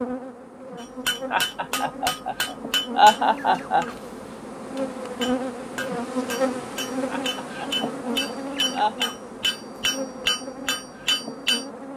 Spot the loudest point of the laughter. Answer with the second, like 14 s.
3 s.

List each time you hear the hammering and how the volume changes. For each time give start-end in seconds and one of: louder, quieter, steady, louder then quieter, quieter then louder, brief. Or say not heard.
0.8-11.7 quieter then louder.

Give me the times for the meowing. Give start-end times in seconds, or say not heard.
not heard.